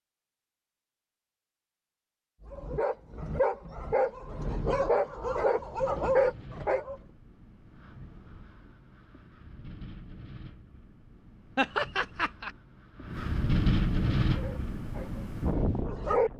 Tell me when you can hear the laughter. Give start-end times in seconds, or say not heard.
11.6-12.5.